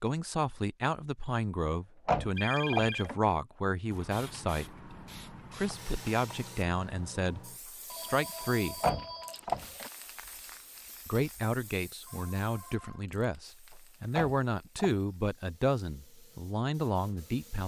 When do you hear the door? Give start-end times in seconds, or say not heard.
2.0-3.1, 8.8-9.9, 14.2-14.9.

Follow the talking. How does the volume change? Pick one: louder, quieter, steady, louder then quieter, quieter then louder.
steady.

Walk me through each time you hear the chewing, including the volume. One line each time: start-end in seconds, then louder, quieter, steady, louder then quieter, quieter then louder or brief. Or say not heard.
not heard.